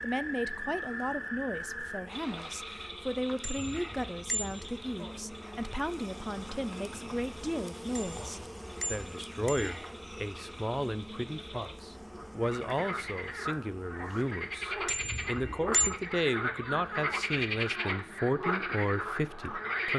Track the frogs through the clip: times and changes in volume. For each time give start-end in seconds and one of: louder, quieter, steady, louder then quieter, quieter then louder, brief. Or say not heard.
0.0-19.9 quieter then louder.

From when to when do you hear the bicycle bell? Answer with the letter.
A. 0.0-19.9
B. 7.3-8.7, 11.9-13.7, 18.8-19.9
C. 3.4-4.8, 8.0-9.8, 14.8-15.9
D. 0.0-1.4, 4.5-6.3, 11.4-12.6
C.